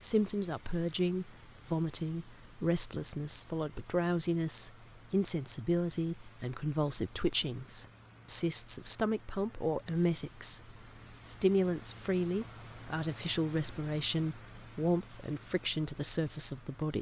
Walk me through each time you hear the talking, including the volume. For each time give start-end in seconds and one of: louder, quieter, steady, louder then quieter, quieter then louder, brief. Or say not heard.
0.0-16.9 steady.